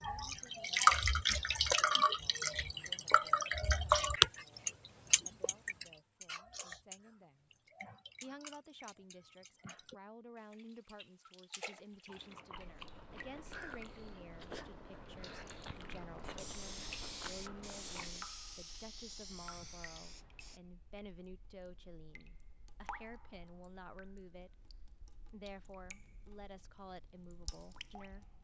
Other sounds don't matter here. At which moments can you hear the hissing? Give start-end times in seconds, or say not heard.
16.4-20.6.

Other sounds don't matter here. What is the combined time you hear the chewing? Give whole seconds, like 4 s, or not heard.
6 s.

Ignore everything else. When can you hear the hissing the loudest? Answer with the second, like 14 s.
17 s.